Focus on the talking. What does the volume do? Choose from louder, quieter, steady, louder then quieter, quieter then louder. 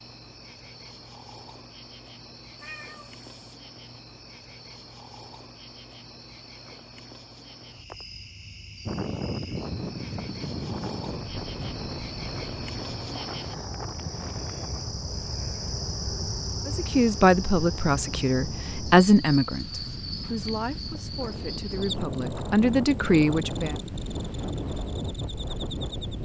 quieter then louder.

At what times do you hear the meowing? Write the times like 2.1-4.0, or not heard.
2.5-3.5.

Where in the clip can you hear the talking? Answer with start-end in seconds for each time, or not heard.
16.6-23.8.